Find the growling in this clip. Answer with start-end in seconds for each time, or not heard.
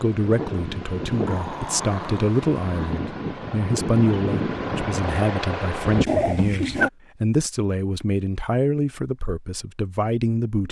1.1-3.0, 6.0-6.9.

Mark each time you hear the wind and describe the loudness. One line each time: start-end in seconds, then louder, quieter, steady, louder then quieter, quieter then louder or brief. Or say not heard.
0.0-6.0 quieter then louder.